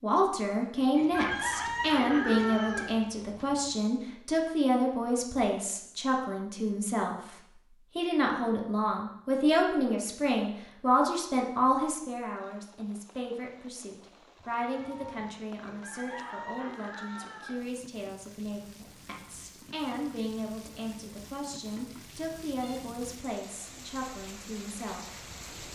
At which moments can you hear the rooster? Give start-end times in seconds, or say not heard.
0.9-3.0, 15.6-17.7.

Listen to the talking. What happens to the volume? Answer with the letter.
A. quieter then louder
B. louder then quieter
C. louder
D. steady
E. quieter
E.